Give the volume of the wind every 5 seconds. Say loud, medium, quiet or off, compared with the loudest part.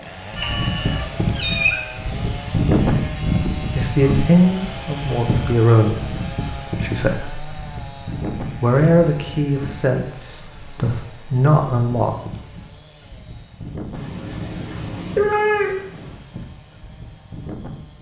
loud, medium, quiet, quiet.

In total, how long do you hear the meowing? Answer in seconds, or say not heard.
4 s.